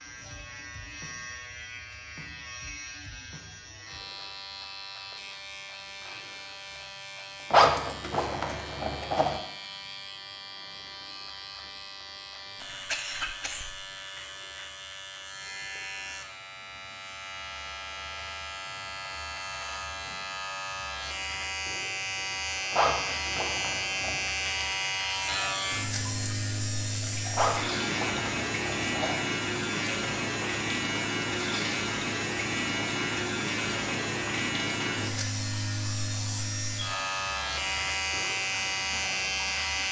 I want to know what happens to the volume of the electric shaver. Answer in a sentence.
The volume of the electric shaver goes up.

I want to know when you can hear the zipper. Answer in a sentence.
The zipper can be heard from 7.5 to 9.4 s, from 22.7 to 24.3 s and from 27.3 to 29.2 s.